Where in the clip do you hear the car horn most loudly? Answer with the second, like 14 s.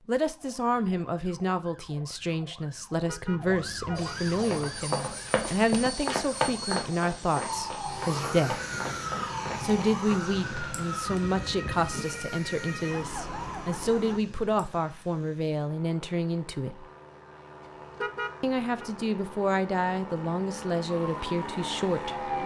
18 s.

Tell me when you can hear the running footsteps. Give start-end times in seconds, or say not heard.
4.4-10.8.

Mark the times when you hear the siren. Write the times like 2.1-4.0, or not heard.
0.2-14.2, 20.9-22.4.